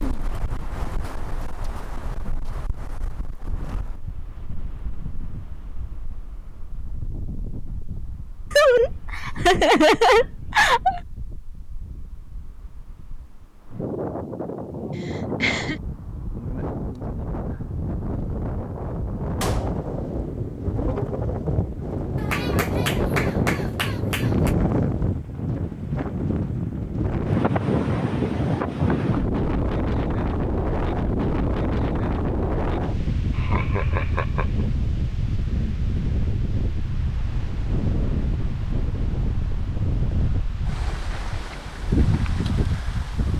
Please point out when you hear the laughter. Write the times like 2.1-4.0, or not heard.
8.5-11.0, 15.1-15.8, 33.4-34.5.